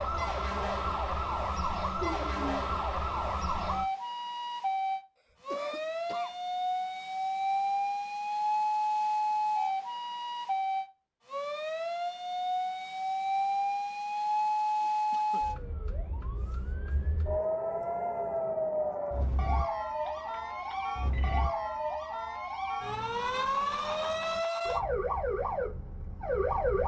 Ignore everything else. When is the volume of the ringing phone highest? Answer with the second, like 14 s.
2 s.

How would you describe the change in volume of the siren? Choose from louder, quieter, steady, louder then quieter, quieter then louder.
steady.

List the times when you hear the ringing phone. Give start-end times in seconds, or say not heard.
2.0-2.6, 20.1-21.4.